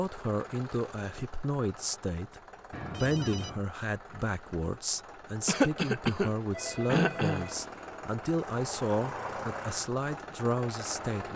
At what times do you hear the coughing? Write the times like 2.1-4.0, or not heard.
5.5-7.5.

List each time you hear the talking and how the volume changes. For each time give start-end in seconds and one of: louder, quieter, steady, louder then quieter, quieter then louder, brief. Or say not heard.
0.0-11.3 steady.